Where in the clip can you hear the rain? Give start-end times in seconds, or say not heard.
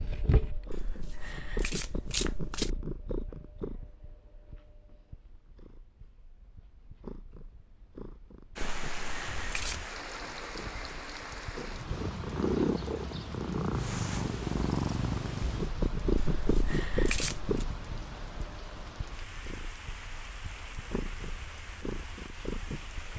8.6-23.1.